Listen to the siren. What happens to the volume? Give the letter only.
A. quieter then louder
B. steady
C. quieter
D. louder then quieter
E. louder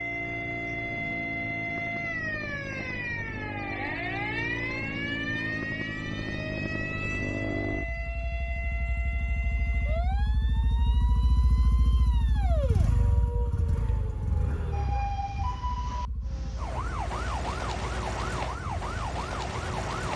A.